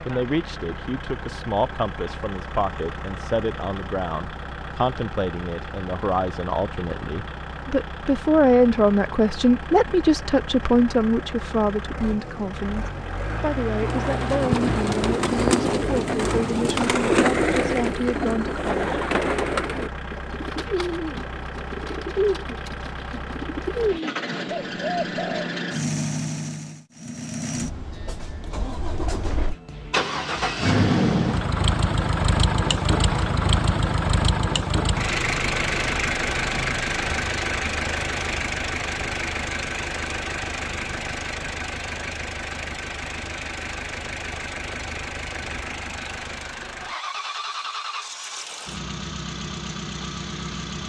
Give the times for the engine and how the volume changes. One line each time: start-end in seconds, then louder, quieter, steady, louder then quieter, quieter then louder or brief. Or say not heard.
0.0-50.8 louder then quieter.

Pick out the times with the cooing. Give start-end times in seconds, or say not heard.
13.8-25.5.